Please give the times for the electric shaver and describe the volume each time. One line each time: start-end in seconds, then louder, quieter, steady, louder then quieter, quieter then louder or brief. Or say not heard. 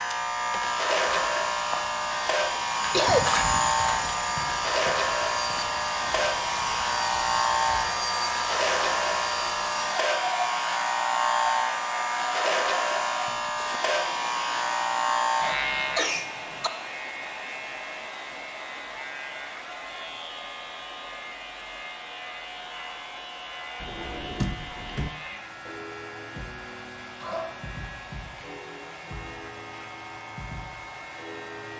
0.0-31.7 quieter.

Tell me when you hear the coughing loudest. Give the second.
3 s.